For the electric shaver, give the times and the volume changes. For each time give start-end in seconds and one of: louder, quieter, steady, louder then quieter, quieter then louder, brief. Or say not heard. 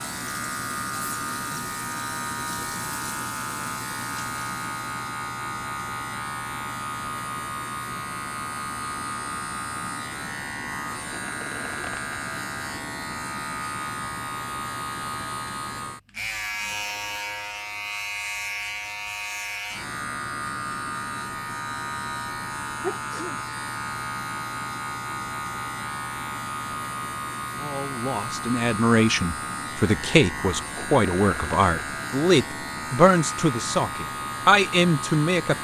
0.0-35.5 steady.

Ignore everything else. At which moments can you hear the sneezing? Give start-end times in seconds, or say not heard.
22.8-23.4.